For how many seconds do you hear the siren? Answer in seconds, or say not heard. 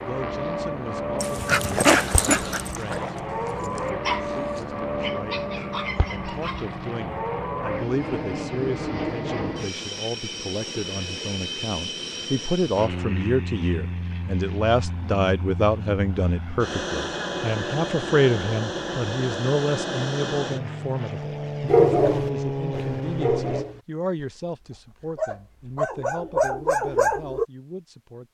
not heard.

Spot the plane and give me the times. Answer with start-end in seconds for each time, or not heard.
0.0-23.6.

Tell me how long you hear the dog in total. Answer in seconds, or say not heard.
11 s.